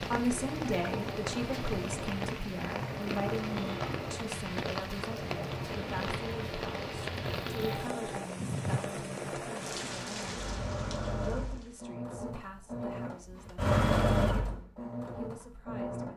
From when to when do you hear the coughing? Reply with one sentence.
You can't hear the coughing here.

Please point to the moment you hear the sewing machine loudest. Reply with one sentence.
The volume of the sewing machine peaks at 14 seconds.